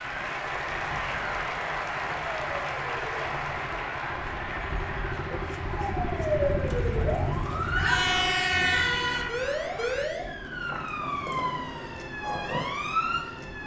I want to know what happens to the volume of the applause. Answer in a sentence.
The loudness of the applause goes down.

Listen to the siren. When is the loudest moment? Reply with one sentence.
The volume of the siren peaks at 8 seconds.